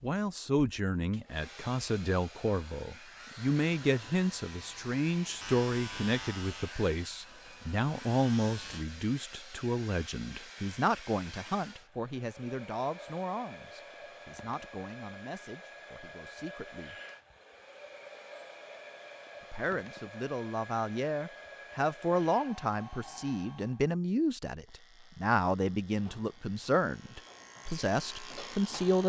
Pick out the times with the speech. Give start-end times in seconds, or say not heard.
0.0-17.0, 19.5-29.0.